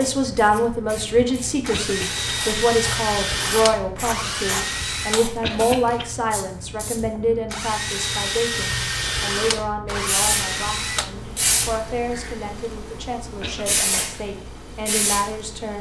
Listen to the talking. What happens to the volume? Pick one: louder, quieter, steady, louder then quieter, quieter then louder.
quieter.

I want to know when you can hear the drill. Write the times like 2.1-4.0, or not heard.
0.0-11.8.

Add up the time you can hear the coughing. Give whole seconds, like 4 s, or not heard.
2 s.